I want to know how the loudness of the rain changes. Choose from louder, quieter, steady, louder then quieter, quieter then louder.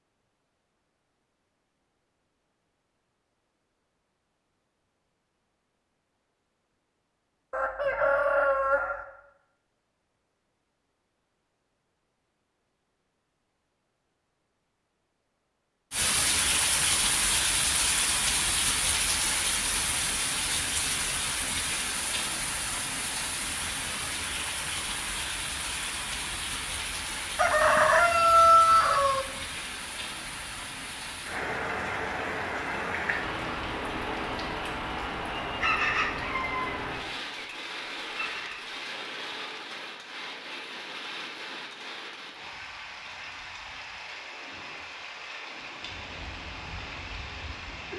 quieter.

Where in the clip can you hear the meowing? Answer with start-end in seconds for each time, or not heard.
not heard.